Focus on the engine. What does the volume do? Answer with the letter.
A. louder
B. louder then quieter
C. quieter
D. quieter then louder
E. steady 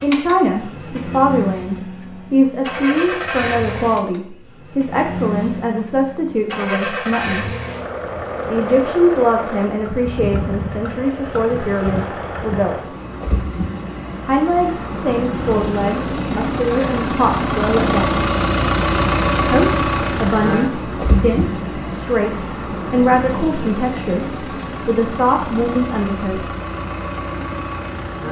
B.